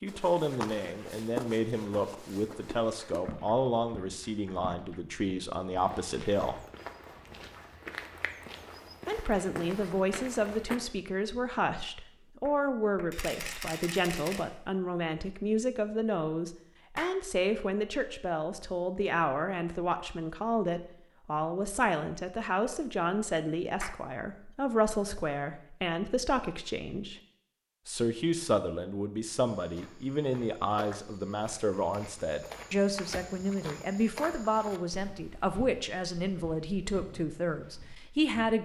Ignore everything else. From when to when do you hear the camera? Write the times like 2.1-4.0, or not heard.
13.1-14.4.